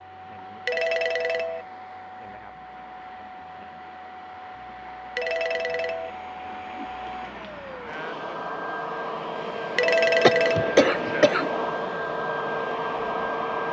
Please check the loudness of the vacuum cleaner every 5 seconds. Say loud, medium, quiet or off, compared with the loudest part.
quiet, medium, loud.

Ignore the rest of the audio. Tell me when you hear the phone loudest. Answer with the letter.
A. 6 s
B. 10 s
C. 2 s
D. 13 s
B.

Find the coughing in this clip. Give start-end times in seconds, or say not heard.
10.2-11.7.